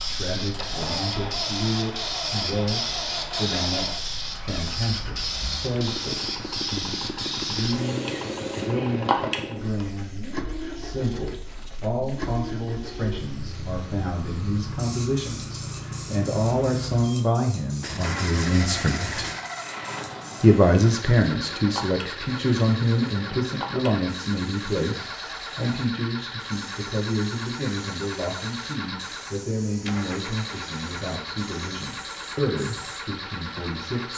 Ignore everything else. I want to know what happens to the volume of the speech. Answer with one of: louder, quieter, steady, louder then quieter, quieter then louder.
louder then quieter.